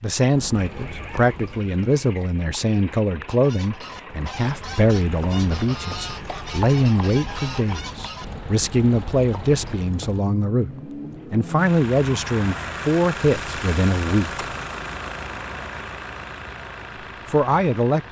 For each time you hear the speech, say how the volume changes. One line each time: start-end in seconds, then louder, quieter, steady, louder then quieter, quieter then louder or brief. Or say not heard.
0.0-14.4 steady
17.2-18.0 brief.